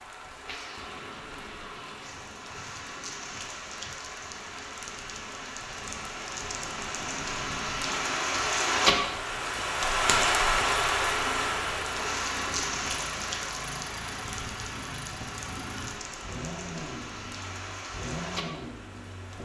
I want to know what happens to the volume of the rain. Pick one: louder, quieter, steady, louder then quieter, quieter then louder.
louder then quieter.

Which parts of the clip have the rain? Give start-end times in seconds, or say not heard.
0.0-19.3.